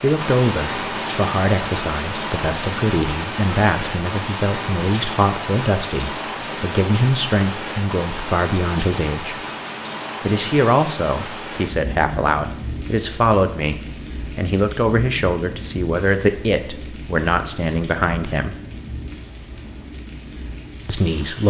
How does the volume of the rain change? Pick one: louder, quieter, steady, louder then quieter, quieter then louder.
quieter.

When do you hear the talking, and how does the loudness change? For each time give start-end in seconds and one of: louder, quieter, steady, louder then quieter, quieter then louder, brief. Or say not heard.
0.0-9.3 steady
10.2-18.6 steady
20.9-21.4 brief.